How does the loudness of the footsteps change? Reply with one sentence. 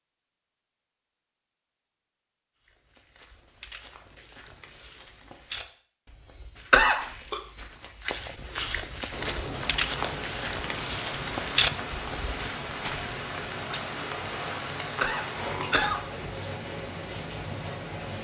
The volume of the footsteps goes up.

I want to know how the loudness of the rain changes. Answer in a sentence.
The loudness of the rain stays about the same.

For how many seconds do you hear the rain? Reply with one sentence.
The rain can be heard for 9 seconds in total.